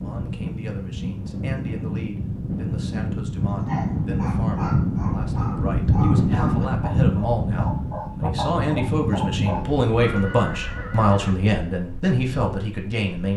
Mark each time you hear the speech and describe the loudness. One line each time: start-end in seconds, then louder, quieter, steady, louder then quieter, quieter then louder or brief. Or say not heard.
0.0-13.3 louder.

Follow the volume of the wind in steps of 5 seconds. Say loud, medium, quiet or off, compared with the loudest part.
loud, loud, quiet.